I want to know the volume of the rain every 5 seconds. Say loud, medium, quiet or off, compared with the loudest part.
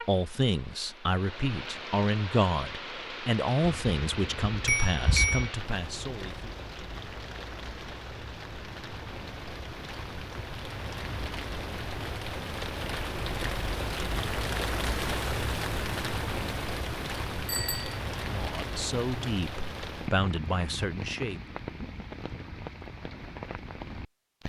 medium, medium, loud, loud, medium.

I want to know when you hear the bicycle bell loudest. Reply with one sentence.
The volume of the bicycle bell peaks at 5 seconds.